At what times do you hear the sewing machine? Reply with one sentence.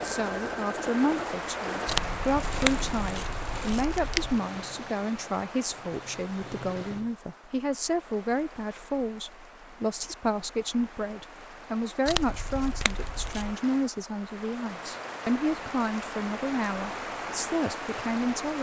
You can hear the sewing machine from 0.0 to 7.2 s.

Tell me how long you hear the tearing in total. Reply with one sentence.
The tearing can be heard for 4 seconds in total.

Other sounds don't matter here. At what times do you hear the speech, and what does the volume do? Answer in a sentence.
You can hear the speech from 0.0 to 18.5 s, at a steady volume.